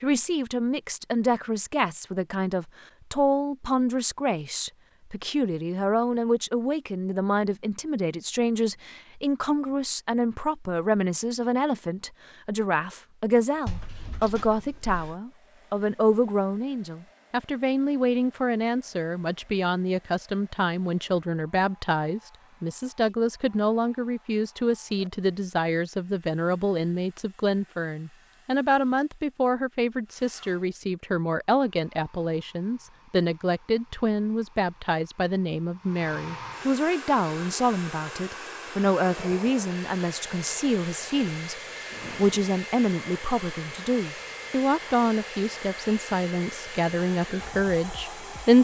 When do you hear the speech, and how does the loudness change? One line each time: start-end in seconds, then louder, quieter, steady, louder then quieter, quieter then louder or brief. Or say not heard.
0.0-48.5 steady.